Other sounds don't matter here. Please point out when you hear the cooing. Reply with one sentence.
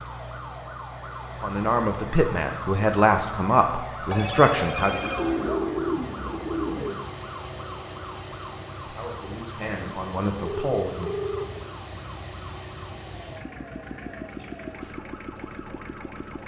You can hear the cooing from 4.8 to 7.0 s.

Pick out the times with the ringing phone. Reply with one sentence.
The ringing phone can be heard from 4.1 to 5.6 s and from 10.4 to 11.4 s.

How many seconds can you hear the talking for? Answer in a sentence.
You can hear the talking for 7 seconds altogether.